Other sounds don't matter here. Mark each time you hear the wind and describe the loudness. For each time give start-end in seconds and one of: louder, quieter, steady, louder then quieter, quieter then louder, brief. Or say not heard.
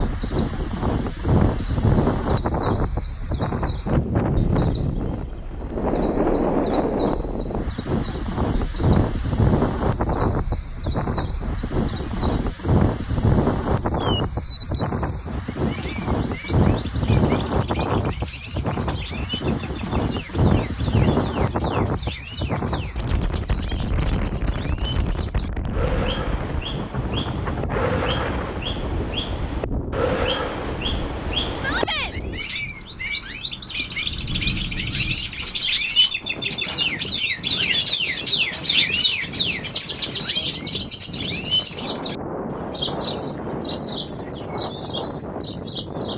0.0-46.1 quieter.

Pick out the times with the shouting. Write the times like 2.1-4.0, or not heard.
31.6-32.1.